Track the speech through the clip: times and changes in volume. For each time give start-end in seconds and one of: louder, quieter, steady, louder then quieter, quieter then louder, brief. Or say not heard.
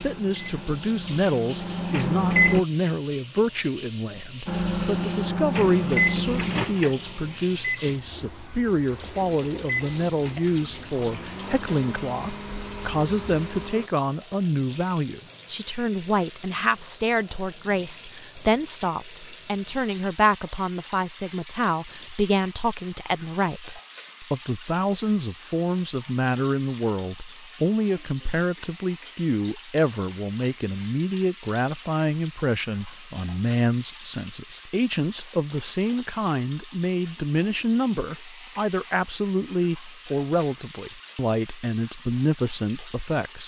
0.0-43.4 steady.